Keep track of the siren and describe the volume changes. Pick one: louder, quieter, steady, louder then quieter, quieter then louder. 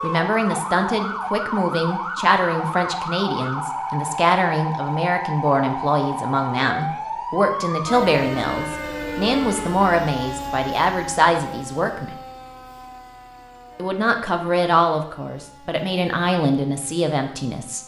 quieter.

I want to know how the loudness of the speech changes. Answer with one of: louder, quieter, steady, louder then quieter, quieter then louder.
steady.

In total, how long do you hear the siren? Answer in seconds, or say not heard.
18 s.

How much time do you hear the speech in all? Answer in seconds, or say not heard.
16 s.